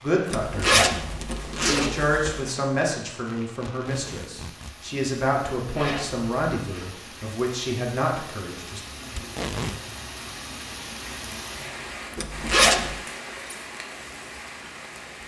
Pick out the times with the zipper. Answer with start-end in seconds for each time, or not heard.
0.3-2.5, 5.6-7.0, 12.2-12.9.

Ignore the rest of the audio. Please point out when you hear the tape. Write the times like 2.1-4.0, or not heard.
3.6-4.8, 9.2-9.8.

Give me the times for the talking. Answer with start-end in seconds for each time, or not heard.
0.0-8.8.